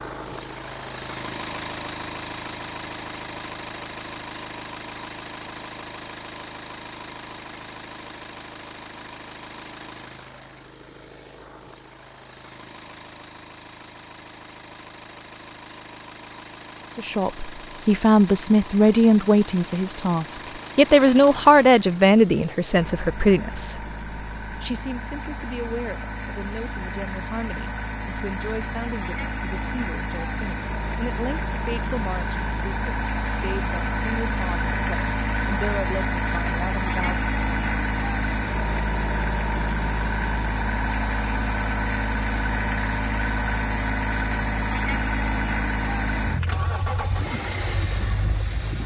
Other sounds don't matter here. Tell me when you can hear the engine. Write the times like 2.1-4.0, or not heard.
0.0-48.8.